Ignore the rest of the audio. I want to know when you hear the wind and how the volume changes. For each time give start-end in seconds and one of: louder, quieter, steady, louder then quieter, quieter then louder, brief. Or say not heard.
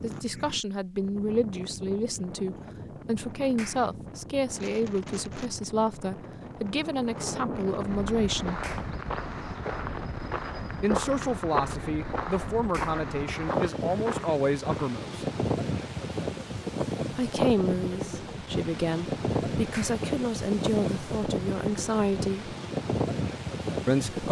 0.0-24.2 louder.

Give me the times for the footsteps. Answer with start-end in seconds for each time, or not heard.
8.1-14.8.